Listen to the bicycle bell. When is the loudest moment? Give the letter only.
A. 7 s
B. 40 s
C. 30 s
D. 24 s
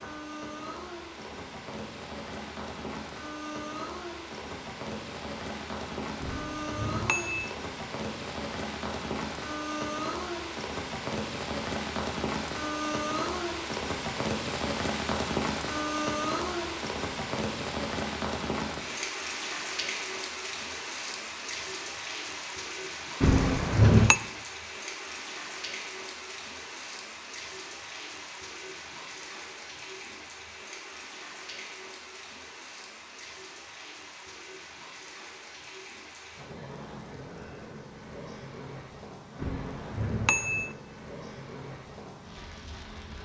D.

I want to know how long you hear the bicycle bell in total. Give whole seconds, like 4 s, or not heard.
4 s.